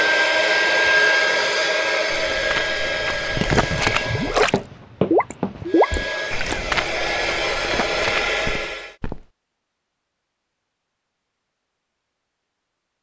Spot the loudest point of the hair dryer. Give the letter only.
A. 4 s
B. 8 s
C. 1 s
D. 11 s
C.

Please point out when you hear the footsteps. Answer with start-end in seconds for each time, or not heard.
2.0-9.2.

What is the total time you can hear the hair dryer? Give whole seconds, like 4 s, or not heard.
8 s.